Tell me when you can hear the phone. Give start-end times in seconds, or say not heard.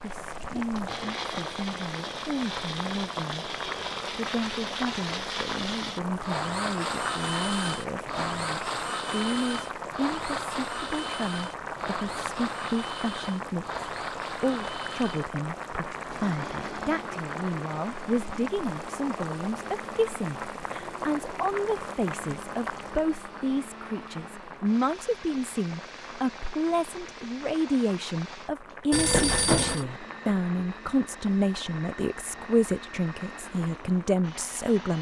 28.9-29.9.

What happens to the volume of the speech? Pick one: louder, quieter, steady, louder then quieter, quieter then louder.
louder.